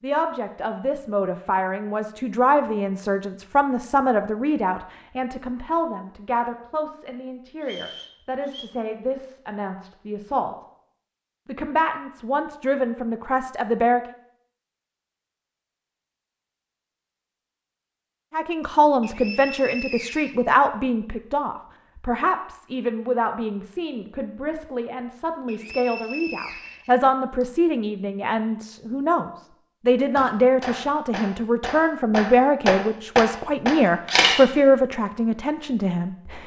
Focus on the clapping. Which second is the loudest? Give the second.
33 s.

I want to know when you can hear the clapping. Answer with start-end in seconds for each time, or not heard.
30.1-34.2.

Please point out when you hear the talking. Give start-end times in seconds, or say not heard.
0.0-10.6, 11.4-14.0, 18.3-36.4.